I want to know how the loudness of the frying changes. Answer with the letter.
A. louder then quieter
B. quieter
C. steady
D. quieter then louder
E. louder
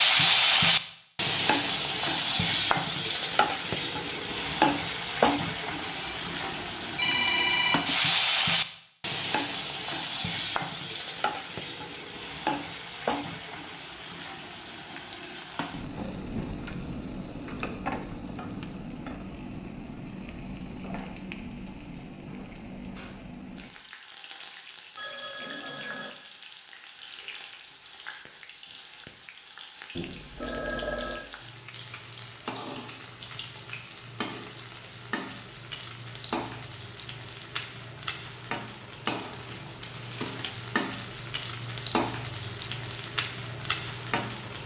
D.